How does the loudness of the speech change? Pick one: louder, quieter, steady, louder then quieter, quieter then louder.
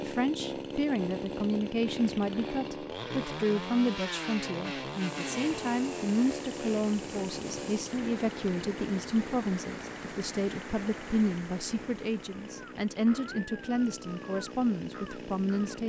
steady.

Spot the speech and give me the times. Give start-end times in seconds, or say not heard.
0.0-15.8.